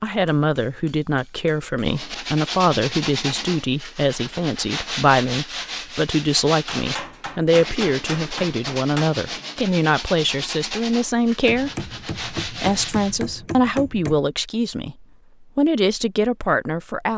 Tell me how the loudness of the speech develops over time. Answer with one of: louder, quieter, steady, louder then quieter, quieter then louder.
steady.